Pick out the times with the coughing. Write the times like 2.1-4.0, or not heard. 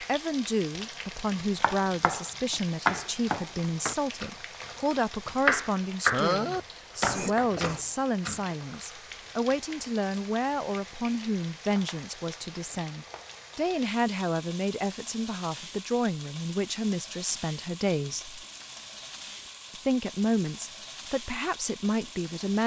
6.1-7.8.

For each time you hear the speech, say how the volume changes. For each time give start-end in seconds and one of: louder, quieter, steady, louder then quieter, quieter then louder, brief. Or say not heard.
0.0-18.4 steady
19.7-22.6 brief.